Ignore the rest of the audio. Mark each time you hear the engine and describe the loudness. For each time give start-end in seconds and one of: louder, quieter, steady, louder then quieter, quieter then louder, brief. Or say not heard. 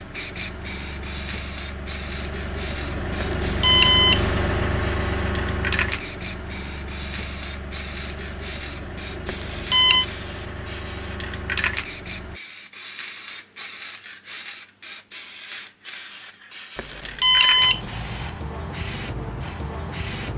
0.0-12.4 louder then quieter.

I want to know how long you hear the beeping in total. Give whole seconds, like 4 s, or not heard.
3 s.